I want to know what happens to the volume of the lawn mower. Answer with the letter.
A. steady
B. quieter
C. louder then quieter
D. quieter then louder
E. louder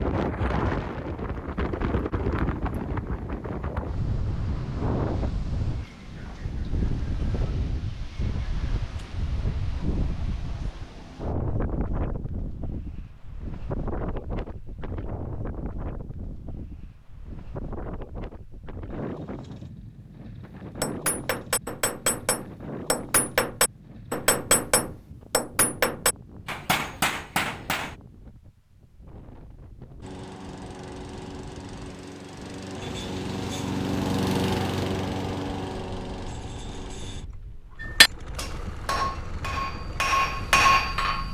C.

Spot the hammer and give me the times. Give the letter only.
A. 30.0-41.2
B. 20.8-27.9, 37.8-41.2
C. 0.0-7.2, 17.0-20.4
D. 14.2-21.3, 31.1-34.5
B.